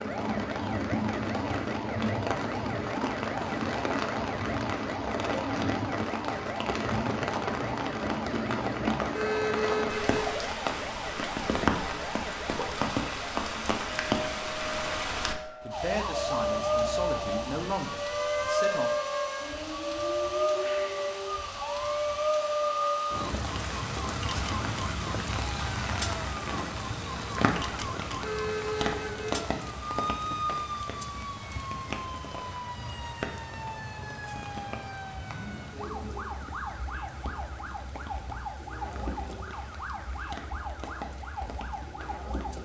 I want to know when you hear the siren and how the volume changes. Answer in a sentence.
The siren can be heard from 0.0 to 42.6 s, at a steady volume.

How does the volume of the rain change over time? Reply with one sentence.
The loudness of the rain goes down.